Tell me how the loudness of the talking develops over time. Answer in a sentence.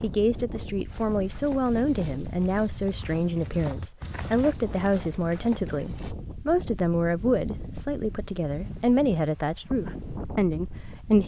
The volume of the talking stays about the same.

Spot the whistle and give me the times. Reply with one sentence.
The whistle can't be heard in this clip.